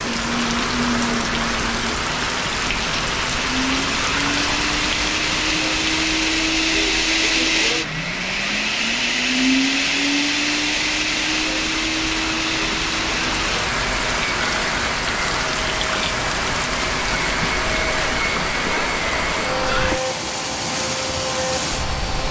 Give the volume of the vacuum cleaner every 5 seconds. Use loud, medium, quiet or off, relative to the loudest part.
medium, loud, loud, medium, medium.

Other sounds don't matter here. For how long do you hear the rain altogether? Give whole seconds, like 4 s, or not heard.
22 s.